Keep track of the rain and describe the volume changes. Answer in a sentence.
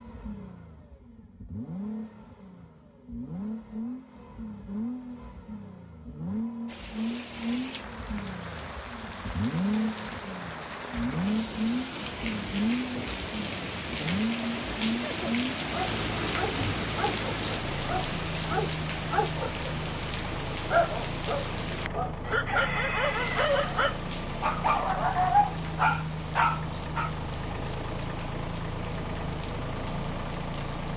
The loudness of the rain goes up, then down.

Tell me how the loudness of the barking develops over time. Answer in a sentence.
The loudness of the barking goes up.